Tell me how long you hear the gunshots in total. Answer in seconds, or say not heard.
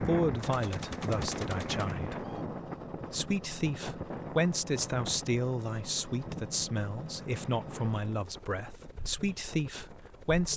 2 s.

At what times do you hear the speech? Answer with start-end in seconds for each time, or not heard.
0.0-2.4, 3.1-10.5.